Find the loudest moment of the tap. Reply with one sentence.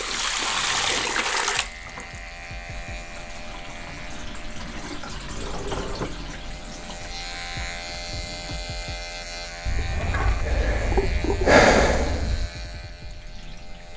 The loudest moment of the tap is at 1 second.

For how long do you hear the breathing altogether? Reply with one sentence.
You can hear the breathing for 3 seconds altogether.